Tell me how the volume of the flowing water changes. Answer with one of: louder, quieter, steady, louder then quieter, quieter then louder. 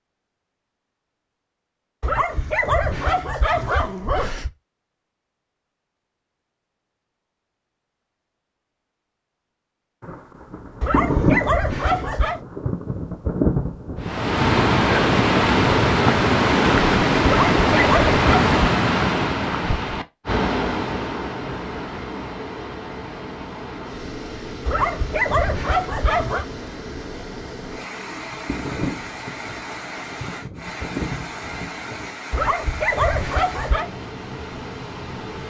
quieter.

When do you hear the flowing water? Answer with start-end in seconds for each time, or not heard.
14.0-35.4.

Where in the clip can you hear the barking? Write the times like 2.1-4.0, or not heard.
2.0-4.5, 10.8-12.4, 17.2-18.5, 24.6-26.4, 32.3-33.9.